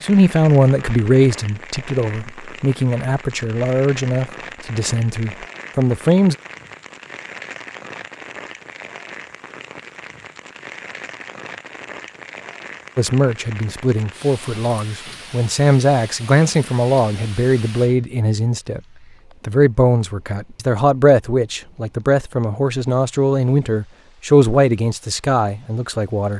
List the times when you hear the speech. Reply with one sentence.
The speech can be heard from 0.0 to 6.3 s, from 12.9 to 18.8 s and from 19.4 to 26.3 s.